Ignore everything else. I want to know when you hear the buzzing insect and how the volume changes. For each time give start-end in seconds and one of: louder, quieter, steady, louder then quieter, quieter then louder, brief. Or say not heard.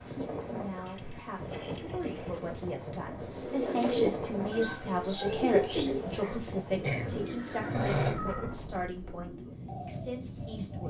not heard.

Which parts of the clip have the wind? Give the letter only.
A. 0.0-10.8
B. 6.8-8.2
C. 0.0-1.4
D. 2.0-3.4
A.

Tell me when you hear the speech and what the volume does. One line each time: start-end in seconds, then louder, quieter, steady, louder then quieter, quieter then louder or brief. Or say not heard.
0.1-10.8 louder then quieter.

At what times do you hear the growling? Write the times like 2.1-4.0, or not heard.
6.8-8.2.